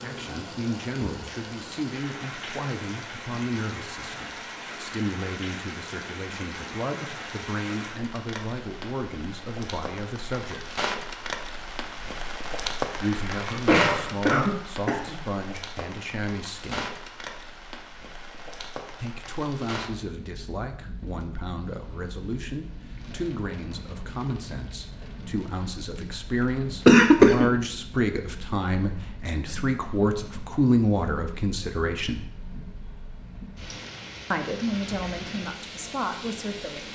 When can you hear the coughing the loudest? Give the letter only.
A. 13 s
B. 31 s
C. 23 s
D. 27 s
D.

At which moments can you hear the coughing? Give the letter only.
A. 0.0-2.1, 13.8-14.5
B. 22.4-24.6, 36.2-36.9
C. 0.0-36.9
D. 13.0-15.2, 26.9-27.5
D.